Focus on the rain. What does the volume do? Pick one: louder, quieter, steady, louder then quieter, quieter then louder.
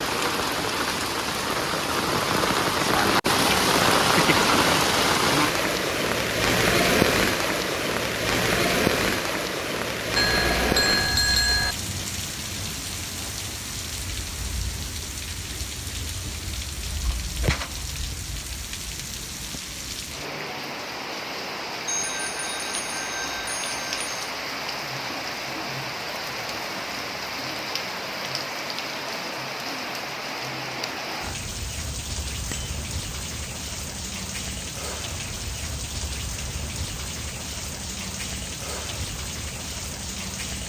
quieter.